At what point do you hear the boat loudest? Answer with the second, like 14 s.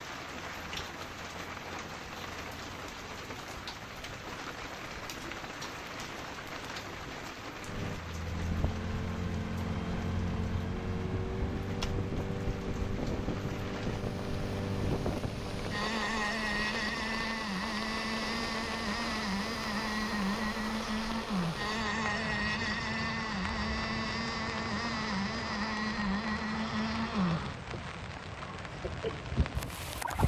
30 s.